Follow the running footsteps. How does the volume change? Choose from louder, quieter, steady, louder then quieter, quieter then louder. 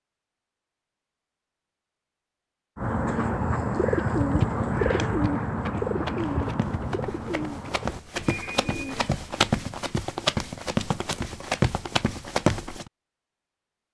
louder.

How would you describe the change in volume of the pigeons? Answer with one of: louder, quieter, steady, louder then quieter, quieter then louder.
quieter.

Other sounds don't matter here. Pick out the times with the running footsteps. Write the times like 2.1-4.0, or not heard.
3.9-12.9.